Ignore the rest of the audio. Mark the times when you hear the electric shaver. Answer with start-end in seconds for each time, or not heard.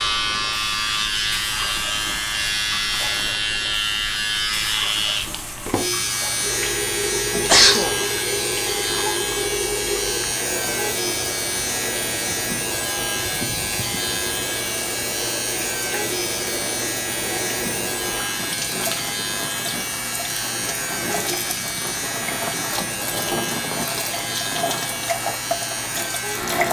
0.0-26.6.